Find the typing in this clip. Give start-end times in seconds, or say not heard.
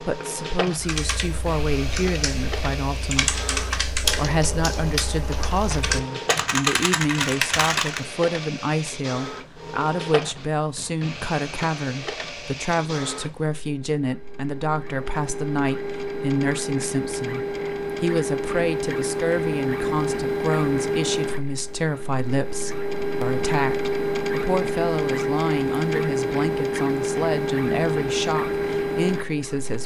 0.8-8.1.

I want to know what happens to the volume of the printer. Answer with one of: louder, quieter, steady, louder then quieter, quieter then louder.
louder.